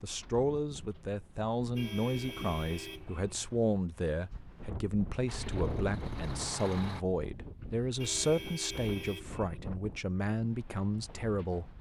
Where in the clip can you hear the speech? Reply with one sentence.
The speech can be heard from 0.0 to 11.7 s.